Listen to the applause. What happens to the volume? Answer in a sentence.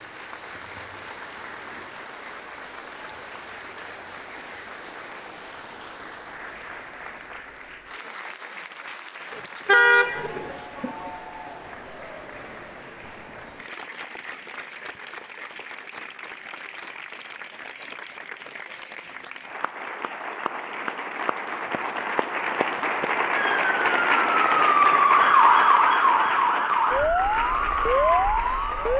The loudness of the applause goes up.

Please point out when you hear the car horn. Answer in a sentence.
The car horn can be heard from 9.3 to 11.1 s.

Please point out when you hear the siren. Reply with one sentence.
The siren can be heard from 23.3 to 28.9 s.